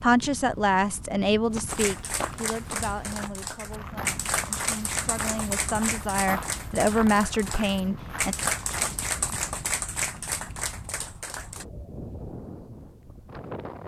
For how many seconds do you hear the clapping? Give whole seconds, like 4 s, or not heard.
10 s.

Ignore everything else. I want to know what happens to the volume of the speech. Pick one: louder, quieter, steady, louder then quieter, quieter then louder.
quieter then louder.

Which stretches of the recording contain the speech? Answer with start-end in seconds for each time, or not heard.
0.0-8.3.